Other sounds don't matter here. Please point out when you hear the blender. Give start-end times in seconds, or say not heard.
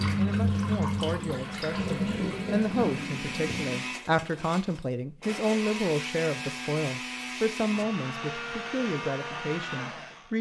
0.0-10.3.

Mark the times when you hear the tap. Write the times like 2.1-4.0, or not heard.
0.0-3.9.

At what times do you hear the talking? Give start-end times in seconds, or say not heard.
0.0-10.3.